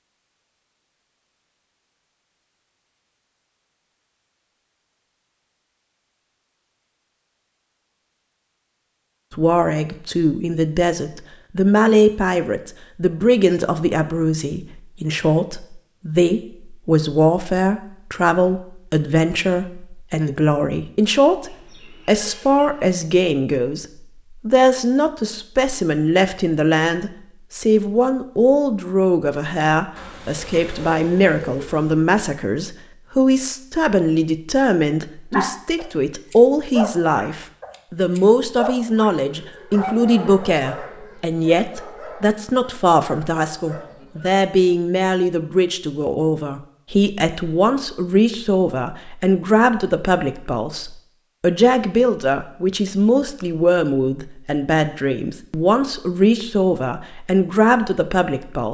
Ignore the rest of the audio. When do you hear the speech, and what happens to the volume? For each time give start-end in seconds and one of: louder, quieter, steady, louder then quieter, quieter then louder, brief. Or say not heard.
9.3-58.6 steady.